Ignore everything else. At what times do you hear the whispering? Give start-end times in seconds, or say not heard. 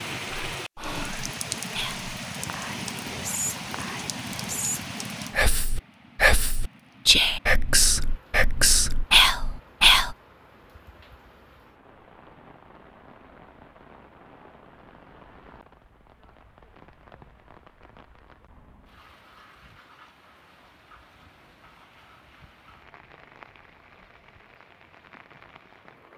0.3-10.2.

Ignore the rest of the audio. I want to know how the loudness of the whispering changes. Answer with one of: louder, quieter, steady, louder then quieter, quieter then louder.
louder.